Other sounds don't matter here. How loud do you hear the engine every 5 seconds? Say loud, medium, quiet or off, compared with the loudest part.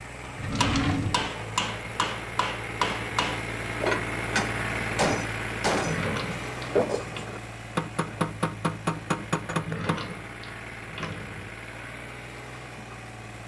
loud, loud, medium.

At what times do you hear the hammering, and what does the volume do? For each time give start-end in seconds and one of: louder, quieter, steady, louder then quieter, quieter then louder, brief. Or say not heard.
0.2-10.2 steady.